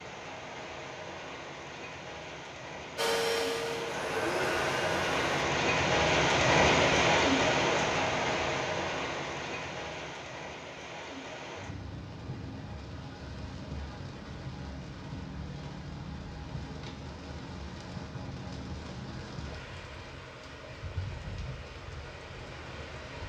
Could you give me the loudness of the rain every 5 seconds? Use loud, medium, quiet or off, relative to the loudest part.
medium, loud, quiet, quiet, quiet.